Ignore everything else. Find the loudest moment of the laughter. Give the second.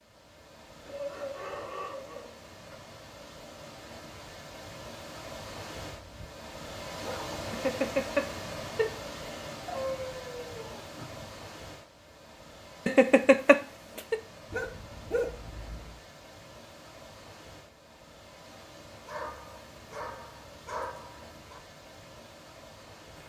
13 s.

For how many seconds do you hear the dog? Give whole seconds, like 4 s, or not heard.
9 s.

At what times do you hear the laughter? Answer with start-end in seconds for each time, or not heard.
7.5-9.6, 12.8-14.2.